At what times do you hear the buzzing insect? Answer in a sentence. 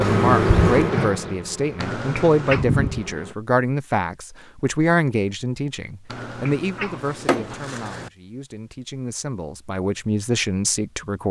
You can hear the buzzing insect from 0.0 to 3.4 s.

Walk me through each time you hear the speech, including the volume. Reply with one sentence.
The speech can be heard from 0.0 to 11.2 s, getting quieter then louder.